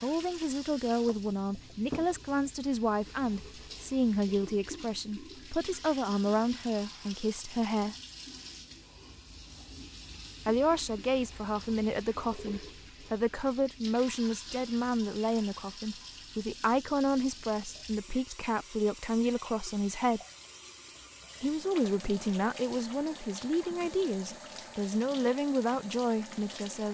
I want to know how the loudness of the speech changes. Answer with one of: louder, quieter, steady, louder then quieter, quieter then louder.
steady.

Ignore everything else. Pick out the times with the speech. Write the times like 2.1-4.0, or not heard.
0.0-8.0, 10.4-20.2, 21.4-26.9.